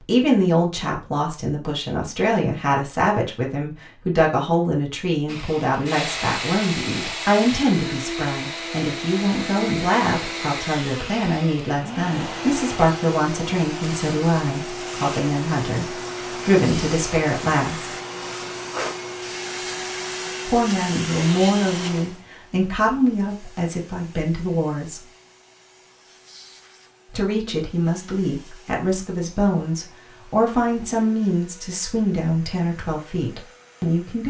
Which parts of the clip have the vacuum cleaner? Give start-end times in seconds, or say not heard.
5.2-34.2.